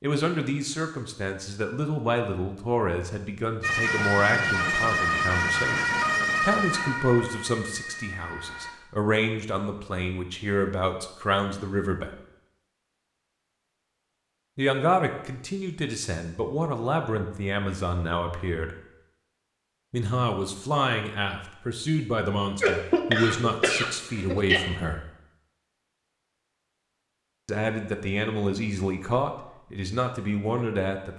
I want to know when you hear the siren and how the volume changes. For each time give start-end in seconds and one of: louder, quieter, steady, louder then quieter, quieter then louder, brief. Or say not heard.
3.6-8.8 quieter.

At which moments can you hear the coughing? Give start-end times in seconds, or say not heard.
22.6-24.6.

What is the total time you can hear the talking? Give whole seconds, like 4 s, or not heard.
25 s.